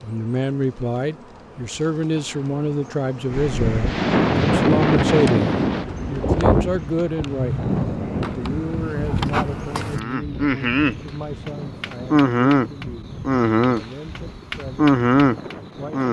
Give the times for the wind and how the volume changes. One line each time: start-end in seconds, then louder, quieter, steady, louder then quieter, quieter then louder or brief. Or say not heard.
3.3-16.0 quieter.